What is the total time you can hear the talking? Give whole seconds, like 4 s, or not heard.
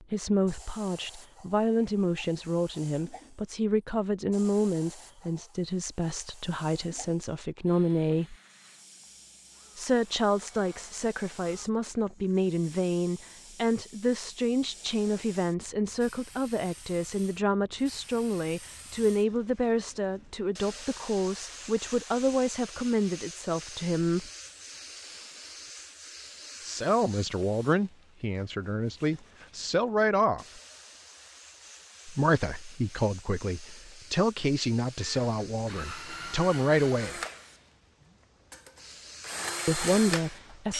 33 s.